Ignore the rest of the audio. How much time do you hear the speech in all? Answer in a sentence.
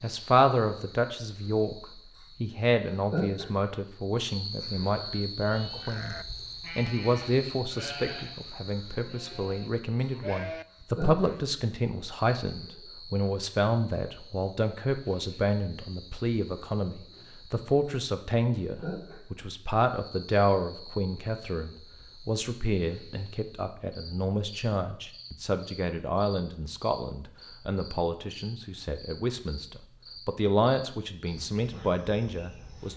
The speech can be heard for 33 seconds in total.